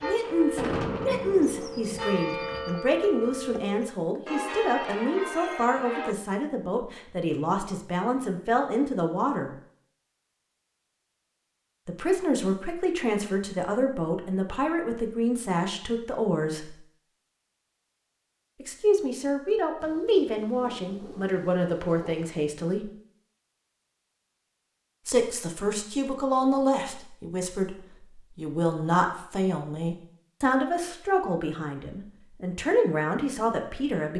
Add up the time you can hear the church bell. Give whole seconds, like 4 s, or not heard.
6 s.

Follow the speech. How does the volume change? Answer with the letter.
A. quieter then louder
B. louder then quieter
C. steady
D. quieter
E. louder
C.